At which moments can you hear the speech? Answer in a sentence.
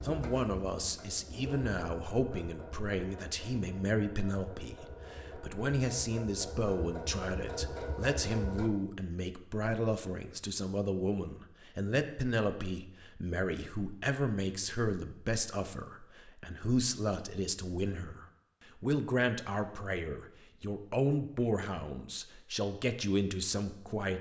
The speech can be heard from 0.0 to 24.1 s.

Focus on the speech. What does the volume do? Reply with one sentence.
The volume of the speech stays about the same.